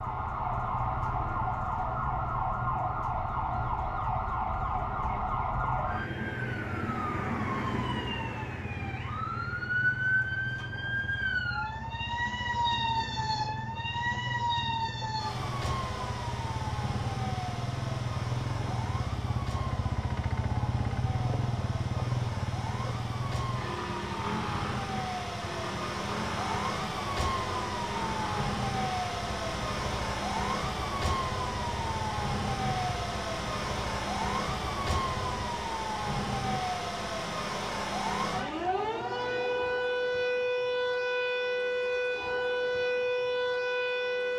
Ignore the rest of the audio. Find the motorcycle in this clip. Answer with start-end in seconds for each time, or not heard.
0.0-35.5.